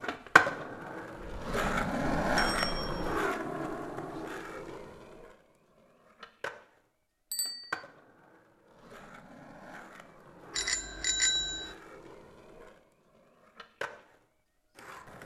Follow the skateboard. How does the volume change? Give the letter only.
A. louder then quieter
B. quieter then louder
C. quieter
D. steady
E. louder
C.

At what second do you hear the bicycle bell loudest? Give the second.
11 s.